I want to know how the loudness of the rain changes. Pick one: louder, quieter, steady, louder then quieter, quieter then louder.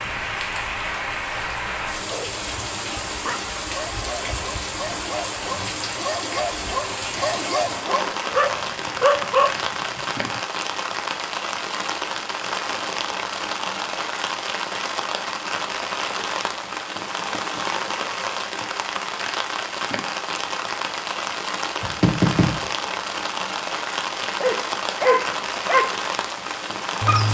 steady.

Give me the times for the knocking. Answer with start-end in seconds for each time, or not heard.
21.8-22.6.